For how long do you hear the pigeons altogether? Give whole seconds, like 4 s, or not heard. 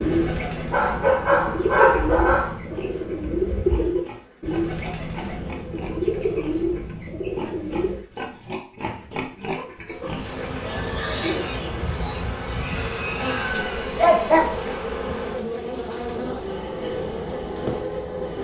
8 s.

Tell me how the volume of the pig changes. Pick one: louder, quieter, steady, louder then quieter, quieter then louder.
louder.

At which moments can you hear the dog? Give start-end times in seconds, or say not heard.
0.7-2.5, 13.3-14.8.